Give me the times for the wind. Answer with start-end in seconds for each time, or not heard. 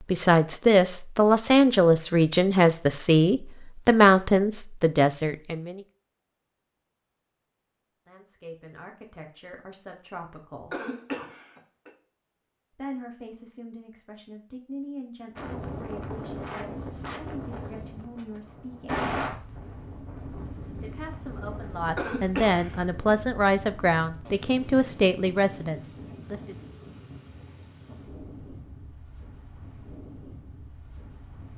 15.3-31.5.